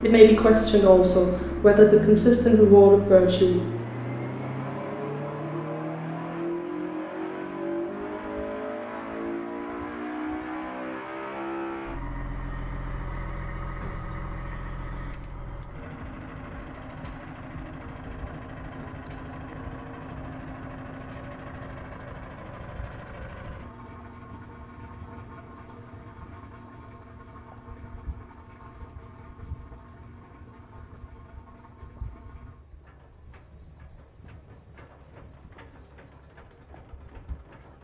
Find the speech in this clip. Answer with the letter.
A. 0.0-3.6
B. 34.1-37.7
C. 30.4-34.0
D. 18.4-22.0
A.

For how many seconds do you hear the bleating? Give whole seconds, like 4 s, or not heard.
not heard.